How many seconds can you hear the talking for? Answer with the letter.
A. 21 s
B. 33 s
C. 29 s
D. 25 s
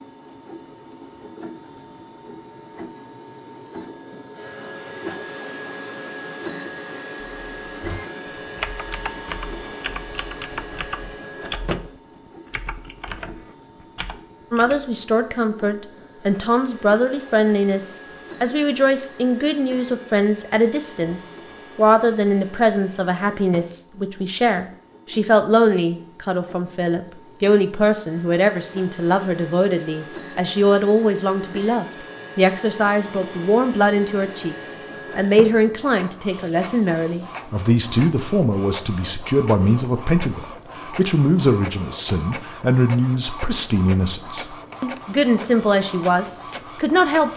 B.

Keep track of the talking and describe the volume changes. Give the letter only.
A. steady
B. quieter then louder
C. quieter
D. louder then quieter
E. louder
A.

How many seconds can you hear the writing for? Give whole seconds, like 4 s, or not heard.
not heard.